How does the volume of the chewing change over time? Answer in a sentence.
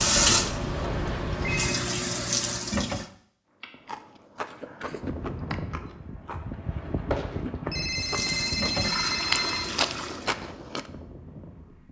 The volume of the chewing goes up.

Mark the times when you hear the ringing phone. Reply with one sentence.
You can hear the ringing phone from 0.1 to 1.8 s and from 7.1 to 9.7 s.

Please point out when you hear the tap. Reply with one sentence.
You can hear the tap from 0.0 to 3.0 s and from 7.9 to 10.3 s.